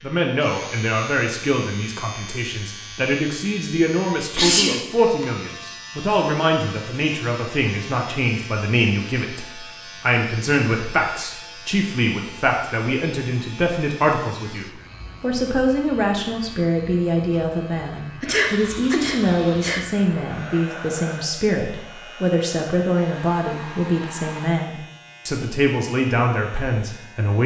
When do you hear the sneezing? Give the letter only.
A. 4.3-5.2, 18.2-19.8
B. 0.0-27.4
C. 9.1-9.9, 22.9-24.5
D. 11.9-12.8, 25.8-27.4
A.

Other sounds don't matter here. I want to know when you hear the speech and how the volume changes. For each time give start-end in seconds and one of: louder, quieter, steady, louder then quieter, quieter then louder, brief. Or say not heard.
0.0-27.4 steady.